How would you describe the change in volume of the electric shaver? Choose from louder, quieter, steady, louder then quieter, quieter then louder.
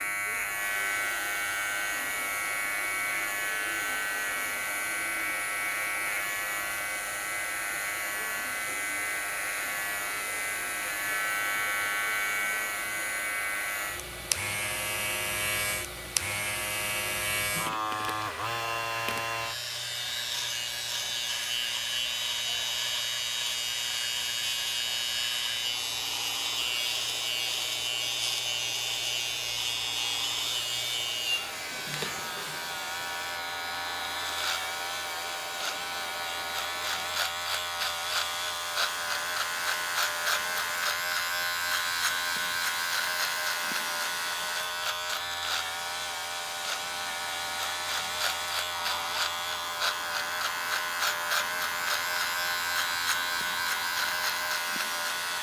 steady.